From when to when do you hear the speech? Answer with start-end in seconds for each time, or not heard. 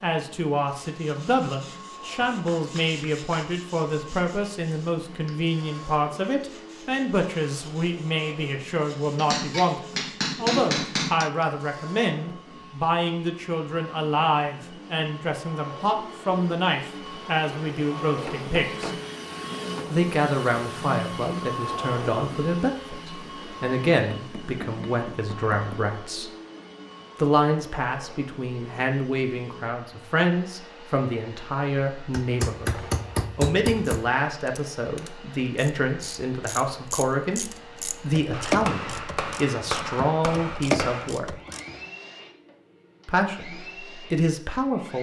0.0-18.9, 19.9-26.3, 27.1-41.4, 43.0-44.9.